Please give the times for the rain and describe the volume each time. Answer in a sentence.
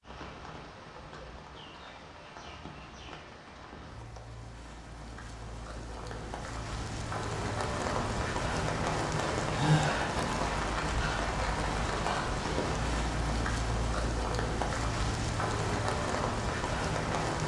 The rain can be heard from 0.0 to 17.4 s, getting louder.